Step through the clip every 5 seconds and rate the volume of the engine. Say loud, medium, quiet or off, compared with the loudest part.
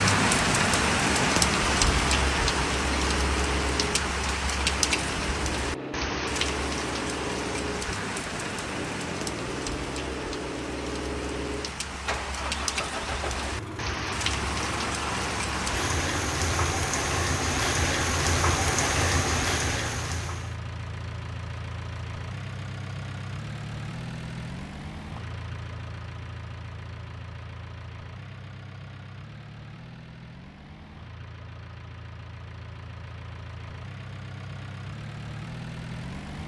loud, loud, loud, loud, loud, medium, medium, loud.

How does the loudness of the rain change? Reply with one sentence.
The volume of the rain goes down, then up.